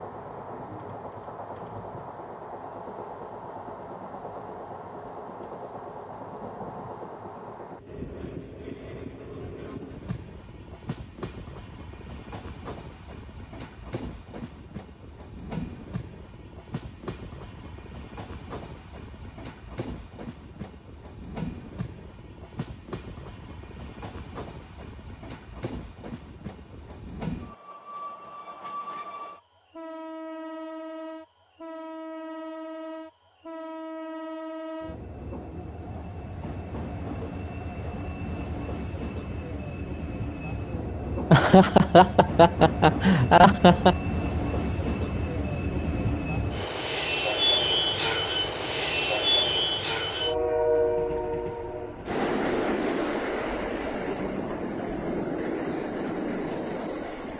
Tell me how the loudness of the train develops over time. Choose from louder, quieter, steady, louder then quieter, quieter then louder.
louder.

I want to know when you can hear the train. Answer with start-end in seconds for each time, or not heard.
0.0-57.3.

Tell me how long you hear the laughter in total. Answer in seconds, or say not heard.
3 s.